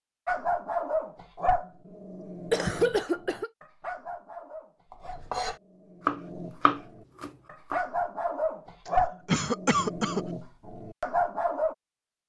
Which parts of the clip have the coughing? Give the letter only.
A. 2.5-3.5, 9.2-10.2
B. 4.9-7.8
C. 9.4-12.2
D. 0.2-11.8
A.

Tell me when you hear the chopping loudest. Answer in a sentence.
The volume of the chopping peaks at 6 seconds.